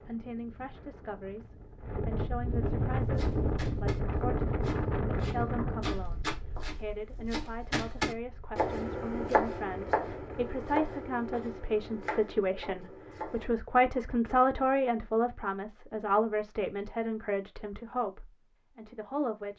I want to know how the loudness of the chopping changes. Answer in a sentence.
The volume of the chopping goes up, then down.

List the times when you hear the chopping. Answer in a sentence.
The chopping can be heard from 3.0 to 13.6 s.